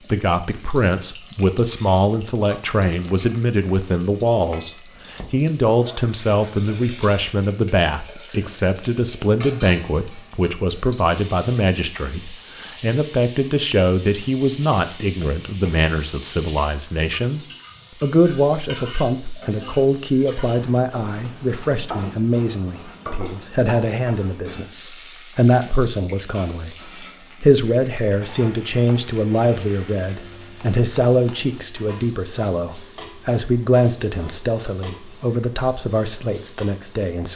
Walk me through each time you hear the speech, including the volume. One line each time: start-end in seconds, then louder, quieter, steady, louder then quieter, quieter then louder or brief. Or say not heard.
0.1-37.3 steady.